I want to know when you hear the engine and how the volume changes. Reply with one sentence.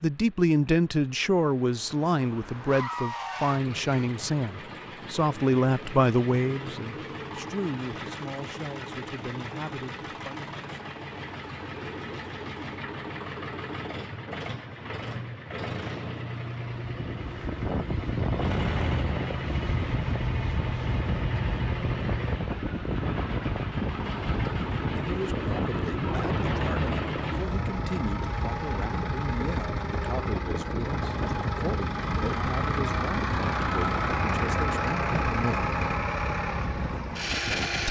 You can hear the engine from 0.0 to 37.8 s, getting louder.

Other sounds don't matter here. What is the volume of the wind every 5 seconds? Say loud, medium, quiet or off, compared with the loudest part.
off, off, off, loud, loud, loud, loud, medium.